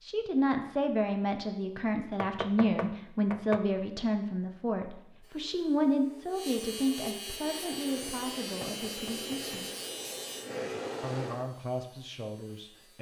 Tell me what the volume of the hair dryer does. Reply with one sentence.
The volume of the hair dryer goes up.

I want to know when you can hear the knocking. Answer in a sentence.
The knocking can be heard from 2.2 to 3.6 s and from 8.6 to 9.6 s.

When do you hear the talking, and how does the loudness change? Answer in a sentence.
You can hear the talking from 0.0 to 9.7 s, getting quieter; and briefly from 11.0 to 12.9 s.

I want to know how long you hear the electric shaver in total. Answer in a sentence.
You can hear the electric shaver for 8 seconds altogether.